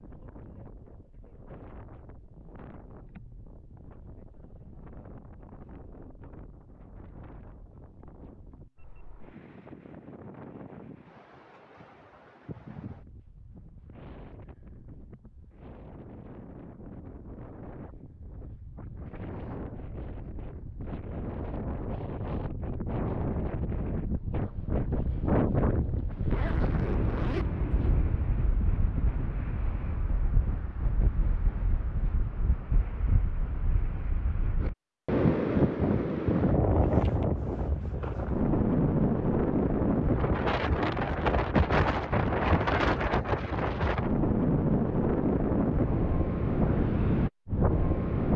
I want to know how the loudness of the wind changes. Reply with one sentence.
The volume of the wind goes up.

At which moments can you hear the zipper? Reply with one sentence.
You can hear the zipper from 26.1 to 28.0 s.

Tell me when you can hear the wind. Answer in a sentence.
You can hear the wind from 0.0 to 48.3 s.